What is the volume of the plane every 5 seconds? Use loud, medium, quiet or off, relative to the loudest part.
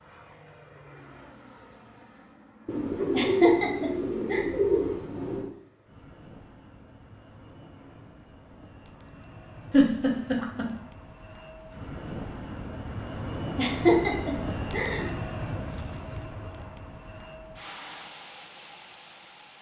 quiet, quiet, loud, loud.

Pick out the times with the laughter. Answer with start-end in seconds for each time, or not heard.
3.1-4.5, 9.7-10.7, 13.6-15.1.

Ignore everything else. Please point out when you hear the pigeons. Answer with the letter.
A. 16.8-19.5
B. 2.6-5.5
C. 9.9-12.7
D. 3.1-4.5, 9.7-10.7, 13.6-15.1
B.